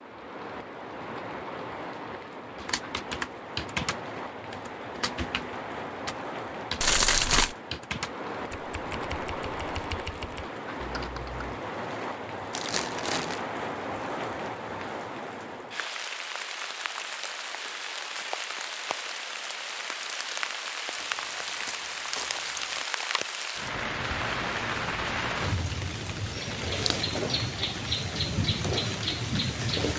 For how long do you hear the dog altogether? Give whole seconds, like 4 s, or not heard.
not heard.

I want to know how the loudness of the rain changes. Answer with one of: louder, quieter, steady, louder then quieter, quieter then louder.
louder.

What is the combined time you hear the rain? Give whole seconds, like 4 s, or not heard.
30 s.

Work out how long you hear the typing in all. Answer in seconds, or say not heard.
9 s.